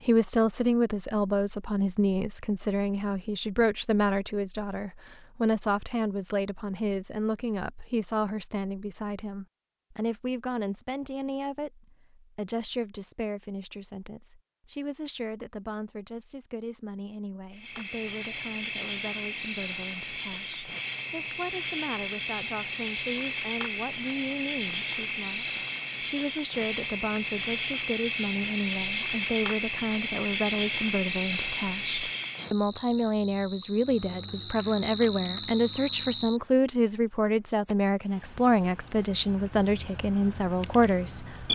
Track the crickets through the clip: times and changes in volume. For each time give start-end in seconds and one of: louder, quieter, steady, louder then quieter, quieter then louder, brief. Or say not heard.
17.5-41.4 louder.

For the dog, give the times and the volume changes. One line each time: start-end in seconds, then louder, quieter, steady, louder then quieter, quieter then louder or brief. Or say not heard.
not heard.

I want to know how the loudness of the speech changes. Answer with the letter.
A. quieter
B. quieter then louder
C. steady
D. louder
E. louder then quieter
B.